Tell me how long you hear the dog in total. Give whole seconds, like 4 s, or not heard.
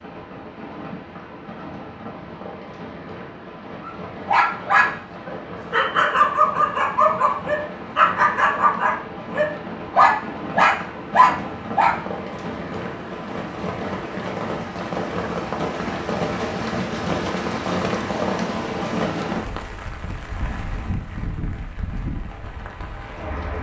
8 s.